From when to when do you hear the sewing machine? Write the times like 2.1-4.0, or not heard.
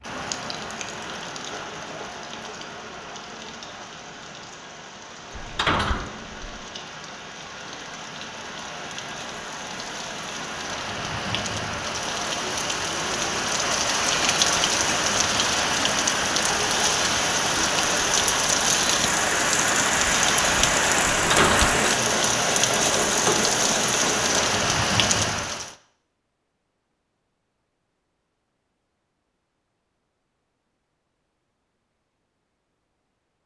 21.3-24.6.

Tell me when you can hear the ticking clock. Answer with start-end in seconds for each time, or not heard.
not heard.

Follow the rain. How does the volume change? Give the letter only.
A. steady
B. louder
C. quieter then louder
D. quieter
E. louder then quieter
B.